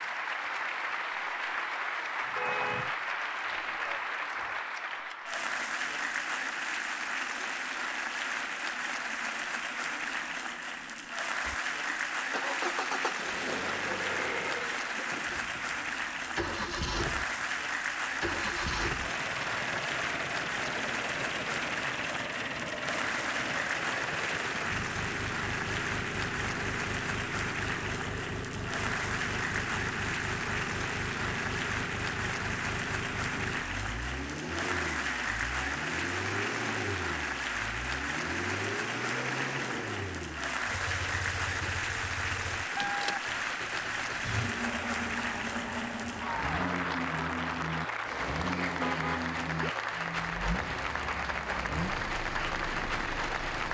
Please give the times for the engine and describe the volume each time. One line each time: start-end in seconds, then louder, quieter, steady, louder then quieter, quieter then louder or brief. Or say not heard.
11.4-53.6 steady.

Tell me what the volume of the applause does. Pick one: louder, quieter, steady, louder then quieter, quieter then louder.
steady.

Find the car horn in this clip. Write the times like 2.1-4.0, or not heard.
2.2-3.0, 48.8-49.8.